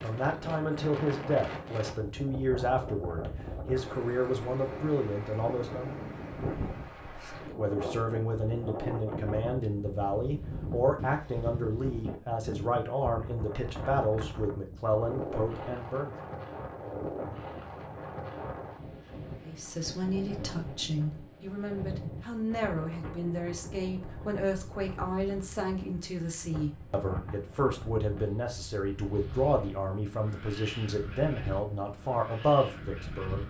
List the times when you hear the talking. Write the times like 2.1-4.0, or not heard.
0.0-6.0, 7.2-16.1, 19.4-33.4.